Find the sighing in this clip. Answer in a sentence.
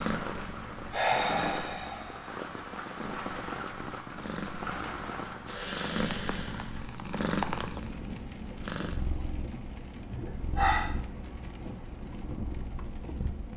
You can hear the sighing from 0.5 to 2.2 s, from 5.5 to 6.7 s and from 10.1 to 10.8 s.